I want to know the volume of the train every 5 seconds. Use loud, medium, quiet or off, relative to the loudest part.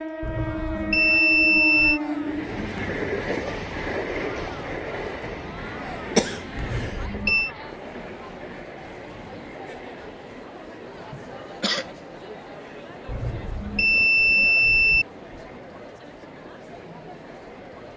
loud, medium, quiet, quiet.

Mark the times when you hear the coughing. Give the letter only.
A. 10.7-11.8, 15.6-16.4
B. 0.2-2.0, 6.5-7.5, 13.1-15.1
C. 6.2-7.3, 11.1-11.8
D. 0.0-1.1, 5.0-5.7
C.